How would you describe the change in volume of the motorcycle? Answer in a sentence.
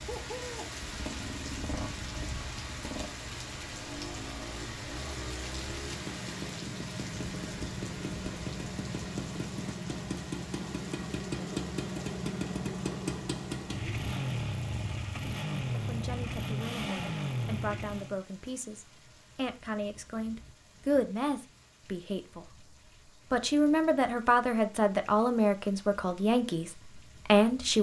The volume of the motorcycle goes up.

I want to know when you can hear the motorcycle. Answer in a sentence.
You can hear the motorcycle from 0.0 to 18.2 s.